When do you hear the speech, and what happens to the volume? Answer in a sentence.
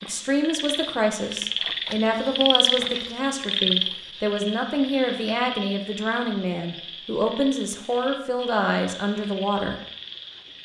You can hear the speech from 0.0 to 9.8 s, at a steady volume.